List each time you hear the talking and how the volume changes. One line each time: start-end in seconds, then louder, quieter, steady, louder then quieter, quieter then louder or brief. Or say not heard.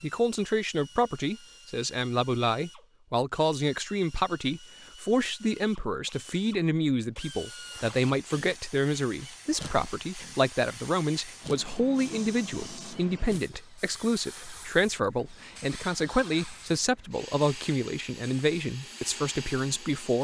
0.0-20.2 steady.